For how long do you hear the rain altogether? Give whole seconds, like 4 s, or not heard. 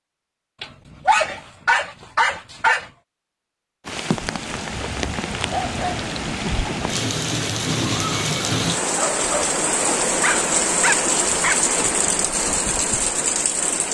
10 s.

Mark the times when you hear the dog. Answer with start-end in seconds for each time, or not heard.
0.6-2.9, 5.5-6.7, 10.2-11.6.